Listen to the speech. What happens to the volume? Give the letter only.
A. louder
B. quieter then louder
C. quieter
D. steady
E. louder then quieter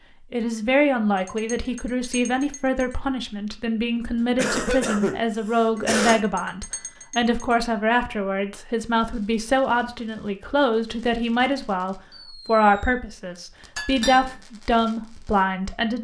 D.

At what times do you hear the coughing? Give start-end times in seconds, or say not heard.
4.0-6.2.